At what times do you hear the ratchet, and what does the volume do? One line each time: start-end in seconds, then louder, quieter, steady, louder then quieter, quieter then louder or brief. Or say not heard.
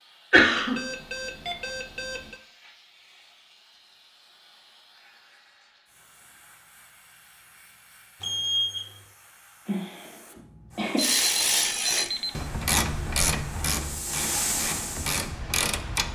10.9-16.1 quieter then louder.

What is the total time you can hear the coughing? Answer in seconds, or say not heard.
2 s.